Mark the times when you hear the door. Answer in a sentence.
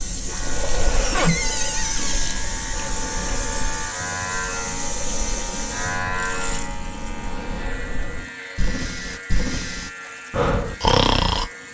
You can hear the door from 1.0 to 2.4 s.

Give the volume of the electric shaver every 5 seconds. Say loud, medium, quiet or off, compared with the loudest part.
loud, loud, medium.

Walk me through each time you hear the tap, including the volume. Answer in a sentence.
The tap can be heard from 0.0 to 11.6 s, getting quieter.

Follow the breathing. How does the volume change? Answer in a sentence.
The volume of the breathing goes down, then up.